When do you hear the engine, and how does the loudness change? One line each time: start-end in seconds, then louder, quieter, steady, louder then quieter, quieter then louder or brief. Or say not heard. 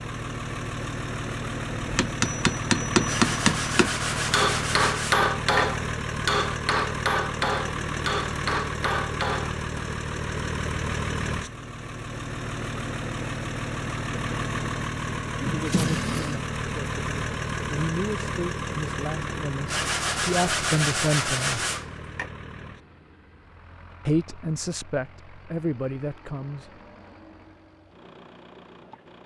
0.0-29.2 quieter.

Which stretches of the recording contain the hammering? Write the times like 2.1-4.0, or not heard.
1.8-9.8.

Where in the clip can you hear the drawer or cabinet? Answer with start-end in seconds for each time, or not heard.
15.4-16.4.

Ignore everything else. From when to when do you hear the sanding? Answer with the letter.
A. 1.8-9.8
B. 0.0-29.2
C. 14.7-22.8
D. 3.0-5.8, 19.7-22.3
D.